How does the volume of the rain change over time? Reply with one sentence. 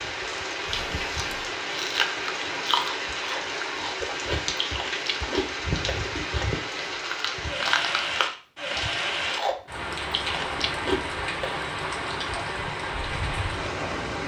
The volume of the rain stays about the same.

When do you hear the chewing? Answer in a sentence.
The chewing can be heard from 0.7 to 11.7 s.